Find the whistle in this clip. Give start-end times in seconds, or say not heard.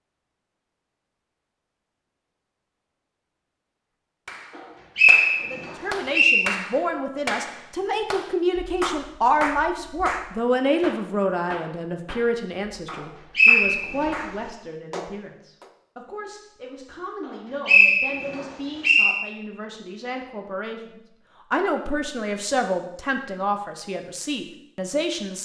4.5-6.5, 13.3-14.1, 17.6-19.1.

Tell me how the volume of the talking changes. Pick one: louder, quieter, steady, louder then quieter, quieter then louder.
quieter then louder.